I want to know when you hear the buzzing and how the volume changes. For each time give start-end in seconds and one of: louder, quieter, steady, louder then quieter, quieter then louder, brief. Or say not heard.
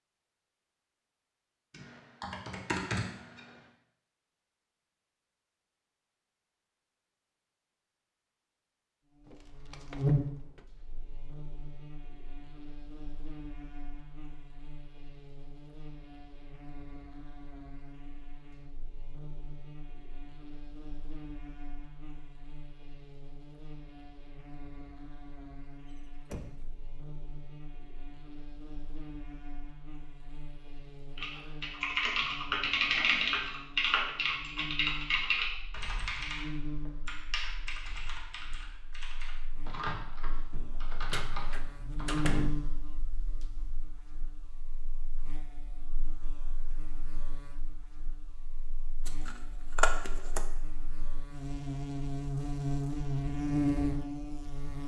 9.2-54.8 quieter then louder.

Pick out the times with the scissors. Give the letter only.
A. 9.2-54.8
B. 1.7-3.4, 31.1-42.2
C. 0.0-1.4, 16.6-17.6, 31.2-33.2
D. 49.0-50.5
D.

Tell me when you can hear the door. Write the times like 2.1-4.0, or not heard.
9.2-10.7, 25.9-26.8, 40.5-42.5.